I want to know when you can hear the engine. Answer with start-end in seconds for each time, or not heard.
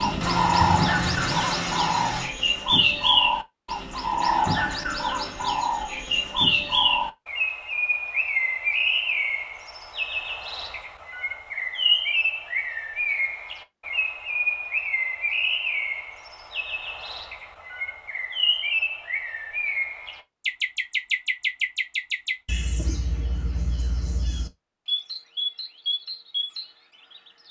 0.0-2.3.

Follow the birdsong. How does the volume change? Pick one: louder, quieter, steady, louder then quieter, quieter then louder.
quieter.